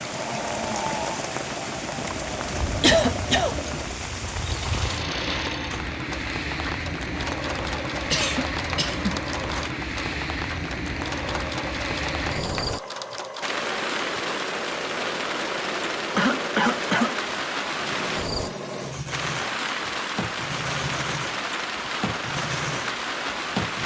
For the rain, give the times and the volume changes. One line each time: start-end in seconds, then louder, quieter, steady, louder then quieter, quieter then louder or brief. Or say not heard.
0.0-23.8 steady.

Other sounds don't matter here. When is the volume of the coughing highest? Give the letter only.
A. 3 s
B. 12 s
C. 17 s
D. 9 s
A.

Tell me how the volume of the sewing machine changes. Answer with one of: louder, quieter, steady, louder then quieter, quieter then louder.
steady.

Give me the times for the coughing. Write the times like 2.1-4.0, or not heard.
2.0-3.5, 8.1-9.2, 16.1-17.1.